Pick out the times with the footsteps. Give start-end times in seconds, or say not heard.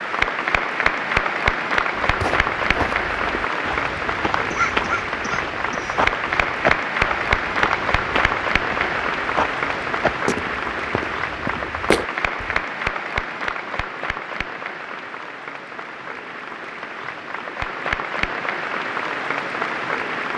2.0-12.6.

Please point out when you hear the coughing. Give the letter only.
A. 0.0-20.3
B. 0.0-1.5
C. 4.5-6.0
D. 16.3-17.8
C.